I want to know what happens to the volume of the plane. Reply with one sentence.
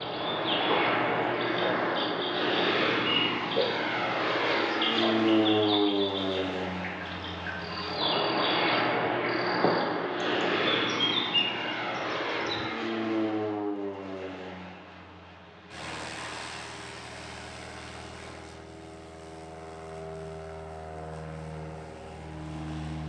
The volume of the plane goes down.